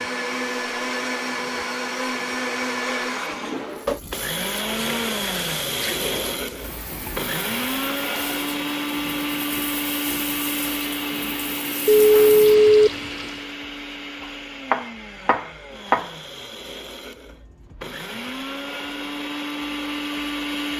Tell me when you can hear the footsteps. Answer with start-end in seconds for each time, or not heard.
not heard.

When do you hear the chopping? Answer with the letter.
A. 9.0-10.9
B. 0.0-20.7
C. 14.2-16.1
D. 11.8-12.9
C.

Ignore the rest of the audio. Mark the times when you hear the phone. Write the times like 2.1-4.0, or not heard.
11.8-12.9.